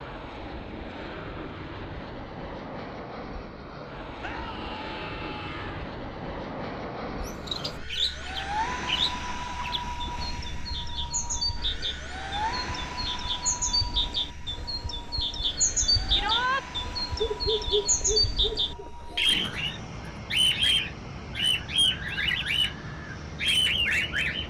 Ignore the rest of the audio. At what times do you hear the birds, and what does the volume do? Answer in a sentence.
You can hear the birds from 7.2 to 24.4 s, getting louder.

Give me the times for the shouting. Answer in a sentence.
You can hear the shouting from 4.2 to 5.8 s and from 16.1 to 16.6 s.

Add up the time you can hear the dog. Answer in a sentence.
You can hear the dog for 2 seconds altogether.